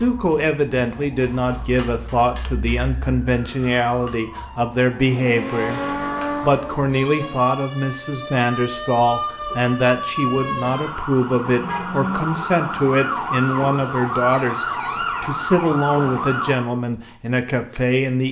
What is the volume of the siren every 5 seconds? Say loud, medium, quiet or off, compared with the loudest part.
quiet, medium, loud, loud.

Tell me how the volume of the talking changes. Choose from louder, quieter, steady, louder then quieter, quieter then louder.
steady.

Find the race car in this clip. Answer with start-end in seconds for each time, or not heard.
5.0-7.5.